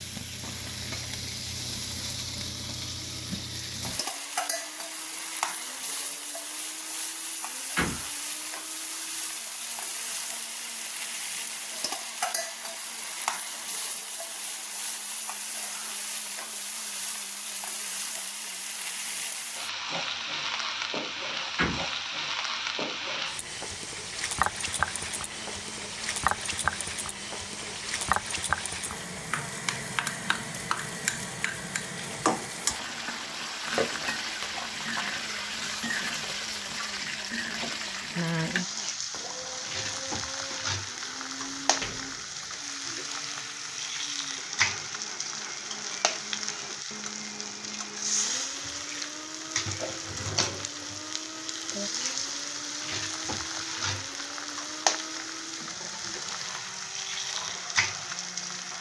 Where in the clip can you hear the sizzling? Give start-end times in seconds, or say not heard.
0.0-58.7.